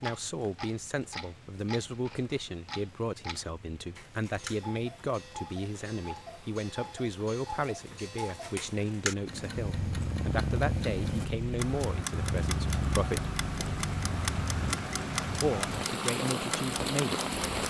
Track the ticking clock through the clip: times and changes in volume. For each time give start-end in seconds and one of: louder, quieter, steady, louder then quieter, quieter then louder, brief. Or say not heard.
0.0-17.6 louder.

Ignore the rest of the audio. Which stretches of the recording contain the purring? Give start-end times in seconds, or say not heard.
9.5-14.8.